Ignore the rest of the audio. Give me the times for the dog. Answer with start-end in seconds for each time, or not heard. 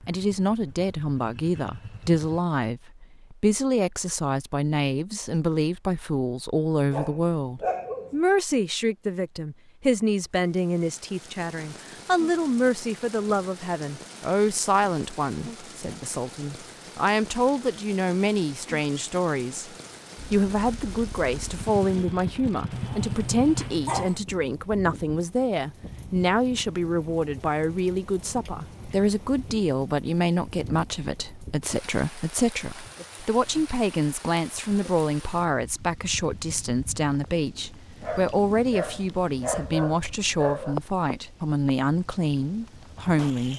6.9-8.2, 22.7-24.2, 38.0-40.8.